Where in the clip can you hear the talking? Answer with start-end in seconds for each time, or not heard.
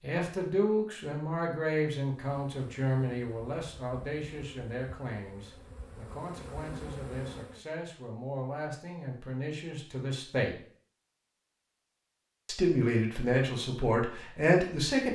0.0-10.6, 12.4-15.1.